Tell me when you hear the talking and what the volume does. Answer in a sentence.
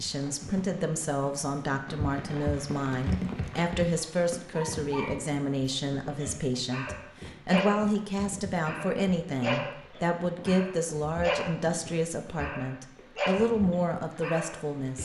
The talking can be heard from 0.0 to 14.9 s, at a steady volume.